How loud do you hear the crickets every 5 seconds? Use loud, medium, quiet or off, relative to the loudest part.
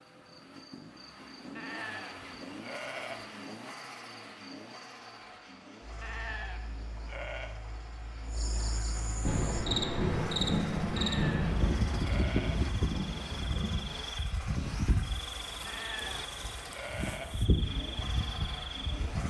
quiet, medium, loud, loud.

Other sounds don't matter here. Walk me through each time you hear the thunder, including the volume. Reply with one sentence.
You can hear the thunder from 9.2 to 13.8 s, getting quieter.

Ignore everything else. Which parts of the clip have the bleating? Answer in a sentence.
You can hear the bleating from 1.6 to 3.2 s, from 6.0 to 7.5 s, from 10.9 to 12.6 s and from 15.7 to 17.4 s.